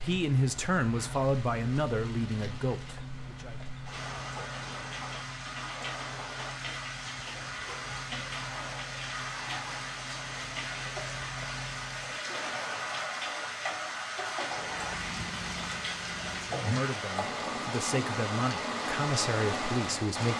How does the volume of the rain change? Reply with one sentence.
The volume of the rain goes up.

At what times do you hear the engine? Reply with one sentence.
You can hear the engine from 0.0 to 12.2 s and from 14.4 to 16.6 s.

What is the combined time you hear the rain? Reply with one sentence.
You can hear the rain for 20 seconds altogether.